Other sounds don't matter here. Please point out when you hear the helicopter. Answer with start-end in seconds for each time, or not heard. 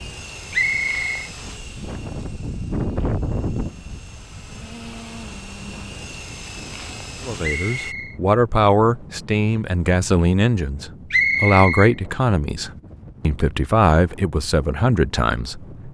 0.0-8.0.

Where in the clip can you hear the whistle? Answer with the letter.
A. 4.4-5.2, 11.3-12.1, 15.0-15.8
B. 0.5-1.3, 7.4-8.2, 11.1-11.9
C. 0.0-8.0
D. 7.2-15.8
B.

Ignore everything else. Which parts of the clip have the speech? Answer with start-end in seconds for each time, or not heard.
7.2-15.8.